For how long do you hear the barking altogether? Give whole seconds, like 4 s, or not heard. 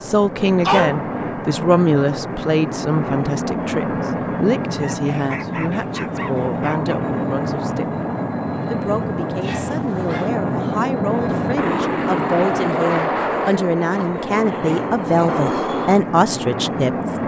5 s.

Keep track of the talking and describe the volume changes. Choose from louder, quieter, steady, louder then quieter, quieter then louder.
quieter then louder.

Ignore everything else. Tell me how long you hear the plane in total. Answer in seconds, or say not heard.
17 s.